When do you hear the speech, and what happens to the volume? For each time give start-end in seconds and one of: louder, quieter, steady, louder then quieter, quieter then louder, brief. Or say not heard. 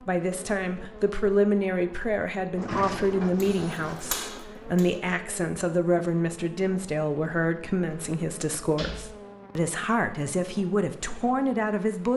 0.1-12.1 steady.